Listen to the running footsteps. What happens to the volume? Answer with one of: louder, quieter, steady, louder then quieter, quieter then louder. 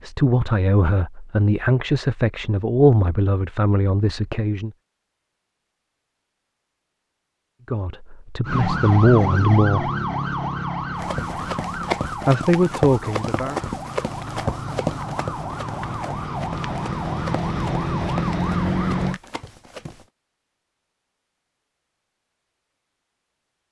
quieter.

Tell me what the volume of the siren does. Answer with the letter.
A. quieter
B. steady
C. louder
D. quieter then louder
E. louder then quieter
D.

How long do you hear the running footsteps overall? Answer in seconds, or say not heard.
9 s.